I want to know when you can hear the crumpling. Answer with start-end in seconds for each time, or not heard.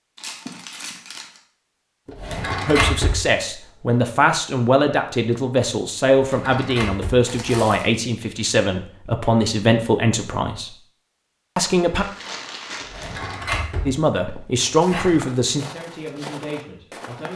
0.1-1.4, 7.2-7.9, 11.9-13.3.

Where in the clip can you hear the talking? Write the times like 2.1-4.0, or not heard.
2.6-10.8, 11.6-12.1, 13.8-17.3.